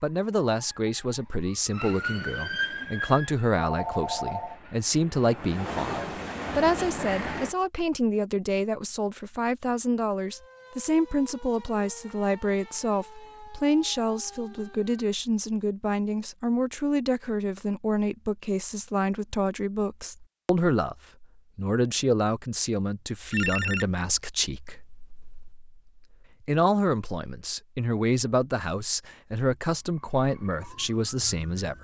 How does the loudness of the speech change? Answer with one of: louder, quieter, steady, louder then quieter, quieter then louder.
steady.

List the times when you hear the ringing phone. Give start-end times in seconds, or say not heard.
3.5-4.6, 23.3-24.1.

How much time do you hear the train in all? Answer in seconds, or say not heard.
5 s.